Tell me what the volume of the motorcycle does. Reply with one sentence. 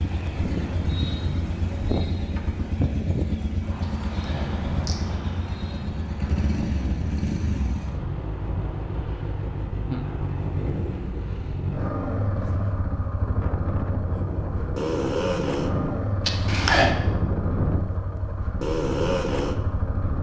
The loudness of the motorcycle stays about the same.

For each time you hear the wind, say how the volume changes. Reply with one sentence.
You can hear the wind from 0.0 to 20.1 s, getting quieter then louder.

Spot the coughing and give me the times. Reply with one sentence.
You can hear the coughing from 3.8 to 5.0 s and from 16.2 to 16.9 s.